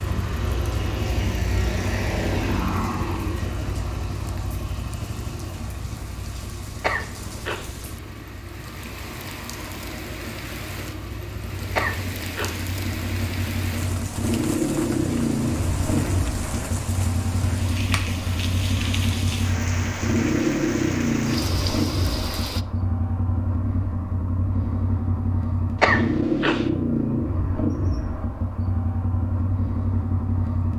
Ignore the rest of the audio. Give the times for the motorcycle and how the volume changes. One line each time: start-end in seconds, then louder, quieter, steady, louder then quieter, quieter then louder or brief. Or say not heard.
0.0-30.7 quieter then louder.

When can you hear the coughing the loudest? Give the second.
26 s.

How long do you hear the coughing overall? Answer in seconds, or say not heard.
3 s.